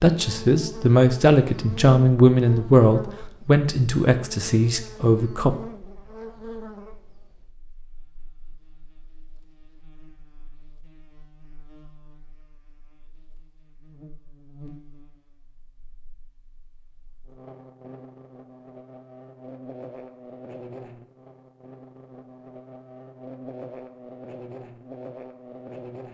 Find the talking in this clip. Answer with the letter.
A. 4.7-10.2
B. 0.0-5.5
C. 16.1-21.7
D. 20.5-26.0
B.